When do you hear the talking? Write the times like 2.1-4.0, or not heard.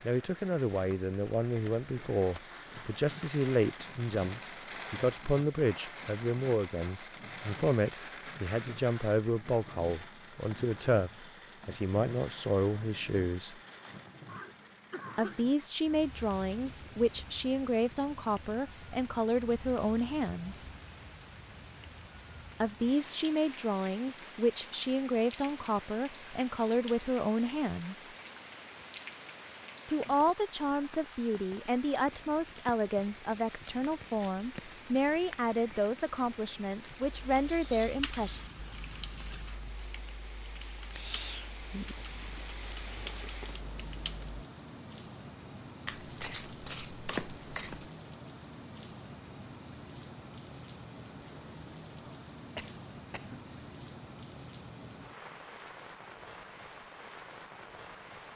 0.0-13.6, 15.2-20.7, 22.6-28.1, 29.9-38.4.